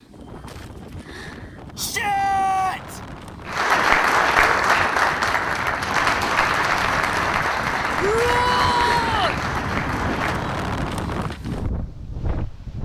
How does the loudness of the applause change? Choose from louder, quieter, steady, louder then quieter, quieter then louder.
quieter.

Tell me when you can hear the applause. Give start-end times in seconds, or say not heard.
3.5-10.6.